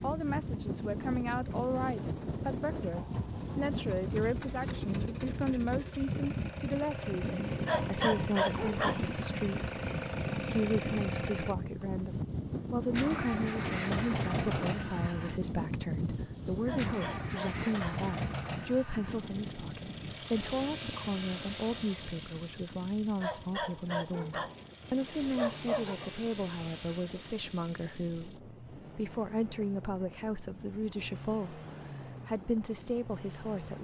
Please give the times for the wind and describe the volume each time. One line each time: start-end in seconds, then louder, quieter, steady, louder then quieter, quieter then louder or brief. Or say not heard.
0.0-33.8 quieter.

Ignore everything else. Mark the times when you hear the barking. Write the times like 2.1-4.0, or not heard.
7.7-9.1, 16.6-18.1, 23.2-24.6, 25.4-26.1.